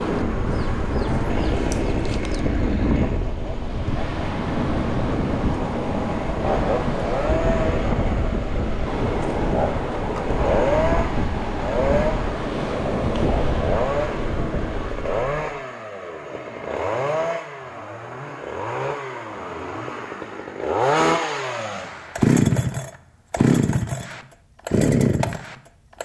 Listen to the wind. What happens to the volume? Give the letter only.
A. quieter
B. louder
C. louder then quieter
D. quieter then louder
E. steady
E.